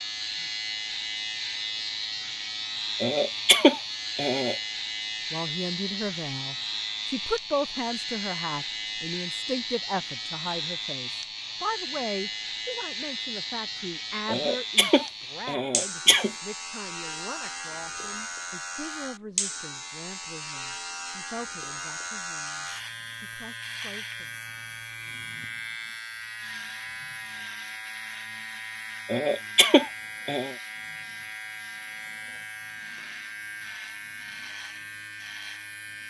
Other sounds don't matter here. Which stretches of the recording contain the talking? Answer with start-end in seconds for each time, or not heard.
5.3-24.4.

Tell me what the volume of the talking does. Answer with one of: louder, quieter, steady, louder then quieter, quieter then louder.
quieter.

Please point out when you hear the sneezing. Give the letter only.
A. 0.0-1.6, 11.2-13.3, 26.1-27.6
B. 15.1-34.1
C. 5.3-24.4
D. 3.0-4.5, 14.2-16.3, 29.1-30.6
D.